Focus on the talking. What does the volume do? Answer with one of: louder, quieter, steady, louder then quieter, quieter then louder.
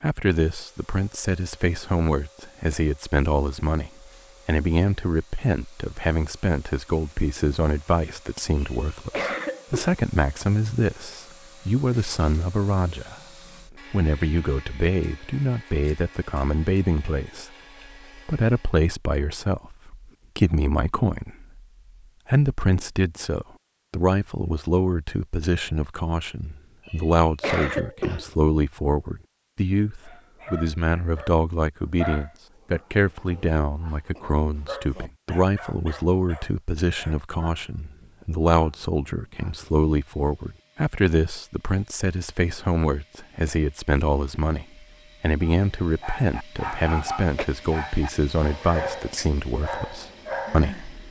steady.